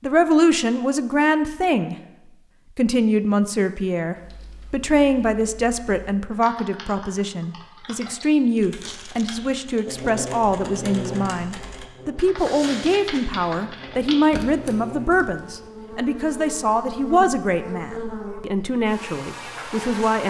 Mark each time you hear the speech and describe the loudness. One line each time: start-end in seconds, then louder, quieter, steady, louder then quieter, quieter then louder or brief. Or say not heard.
0.0-1.9 brief
2.8-20.2 steady.